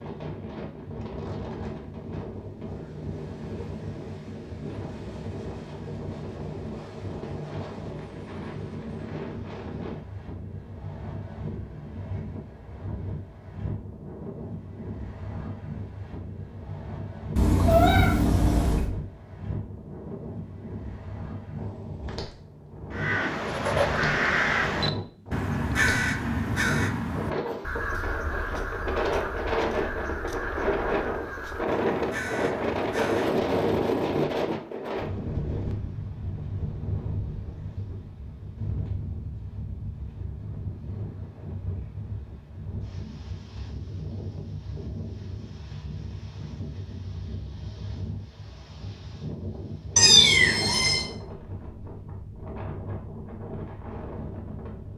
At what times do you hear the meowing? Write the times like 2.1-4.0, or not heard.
17.4-18.9, 50.0-51.0.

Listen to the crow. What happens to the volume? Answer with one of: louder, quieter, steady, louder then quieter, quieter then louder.
quieter.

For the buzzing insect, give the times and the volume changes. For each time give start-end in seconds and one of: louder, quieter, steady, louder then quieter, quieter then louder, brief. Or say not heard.
not heard.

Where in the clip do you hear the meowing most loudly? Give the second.
50 s.